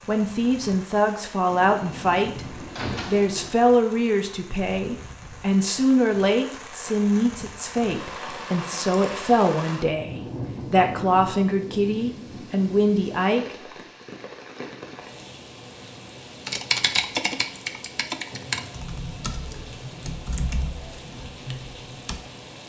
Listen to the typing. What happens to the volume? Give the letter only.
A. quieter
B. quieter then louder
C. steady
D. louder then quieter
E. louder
A.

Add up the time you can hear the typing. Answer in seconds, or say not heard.
6 s.